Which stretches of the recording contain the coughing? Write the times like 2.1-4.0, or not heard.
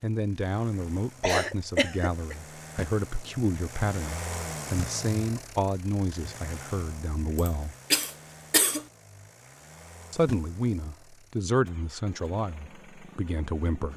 1.2-2.4, 7.3-8.8.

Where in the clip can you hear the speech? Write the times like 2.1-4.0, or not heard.
0.0-7.8, 10.1-13.9.